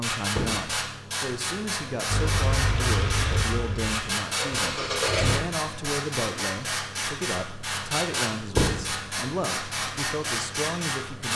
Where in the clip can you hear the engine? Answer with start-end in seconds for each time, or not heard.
2.0-5.4.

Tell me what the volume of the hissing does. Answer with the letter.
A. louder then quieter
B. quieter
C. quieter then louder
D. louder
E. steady
E.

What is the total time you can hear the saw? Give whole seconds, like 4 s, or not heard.
not heard.